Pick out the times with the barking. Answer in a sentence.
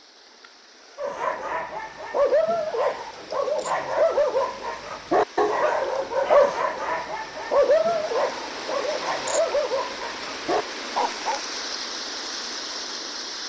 The barking can be heard from 0.9 to 11.4 s.